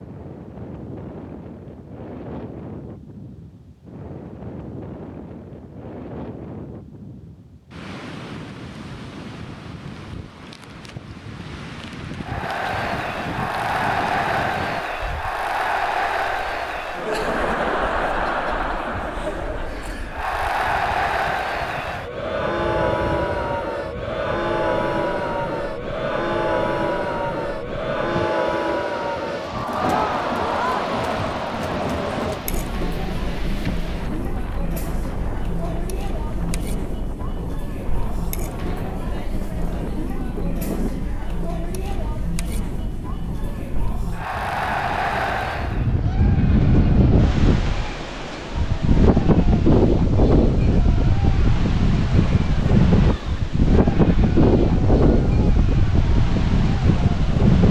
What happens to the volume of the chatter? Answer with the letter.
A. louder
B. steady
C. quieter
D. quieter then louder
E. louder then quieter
C.